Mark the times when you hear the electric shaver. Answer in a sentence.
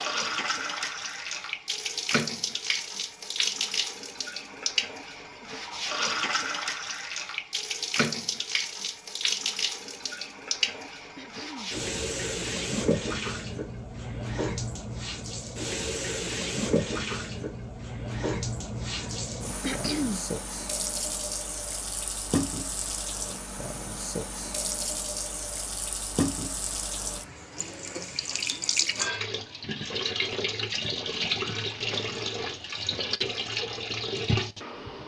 The electric shaver can't be heard in this clip.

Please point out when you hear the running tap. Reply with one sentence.
You can hear the running tap from 0.0 to 35.0 s.